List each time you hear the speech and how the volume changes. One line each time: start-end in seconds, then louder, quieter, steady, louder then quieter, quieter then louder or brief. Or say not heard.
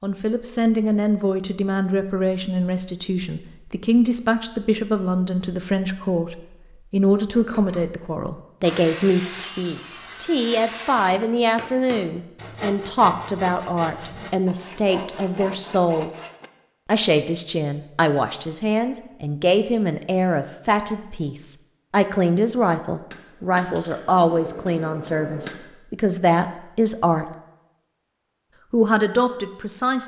0.0-16.1 steady
16.9-27.2 steady
28.7-30.0 brief.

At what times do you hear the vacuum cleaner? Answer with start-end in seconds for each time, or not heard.
not heard.